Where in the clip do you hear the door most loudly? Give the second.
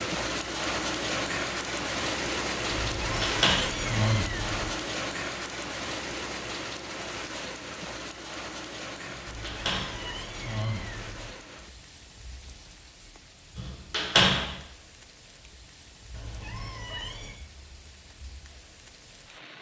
14 s.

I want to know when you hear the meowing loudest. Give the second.
4 s.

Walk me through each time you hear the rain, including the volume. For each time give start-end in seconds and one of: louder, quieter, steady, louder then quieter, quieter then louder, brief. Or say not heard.
0.0-19.5 quieter.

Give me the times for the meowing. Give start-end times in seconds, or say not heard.
3.0-4.7, 9.2-11.3, 16.1-17.4.